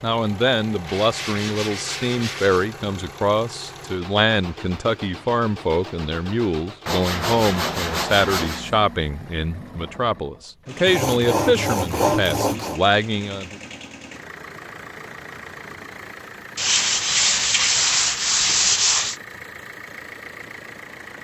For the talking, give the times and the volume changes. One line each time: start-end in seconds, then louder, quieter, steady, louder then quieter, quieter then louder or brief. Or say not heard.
0.0-13.6 steady.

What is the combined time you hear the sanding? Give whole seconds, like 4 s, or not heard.
8 s.